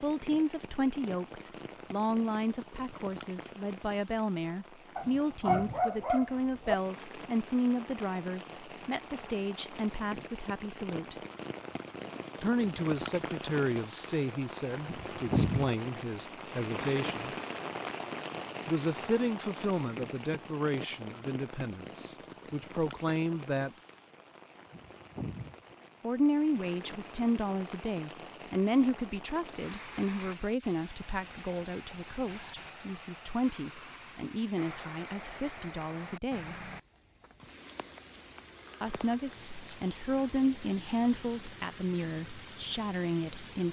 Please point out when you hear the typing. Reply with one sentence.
You can't hear the typing here.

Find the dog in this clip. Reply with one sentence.
The dog can be heard from 5.0 to 6.8 s.